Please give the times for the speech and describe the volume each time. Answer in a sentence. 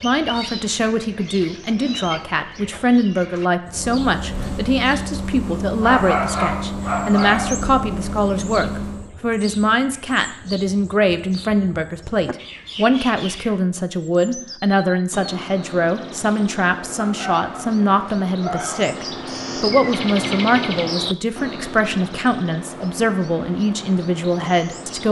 You can hear the speech from 0.0 to 25.0 s, at a steady volume.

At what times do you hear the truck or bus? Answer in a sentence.
You can hear the truck or bus from 3.6 to 9.1 s.